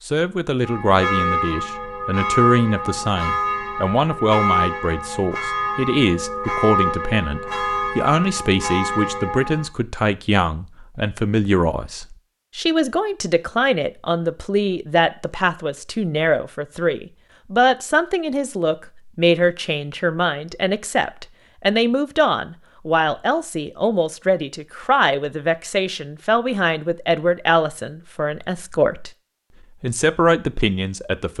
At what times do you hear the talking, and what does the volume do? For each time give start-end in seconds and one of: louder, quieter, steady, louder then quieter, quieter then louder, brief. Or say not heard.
0.1-29.1 steady
29.8-31.3 brief.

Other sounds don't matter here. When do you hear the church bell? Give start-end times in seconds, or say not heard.
0.6-9.7.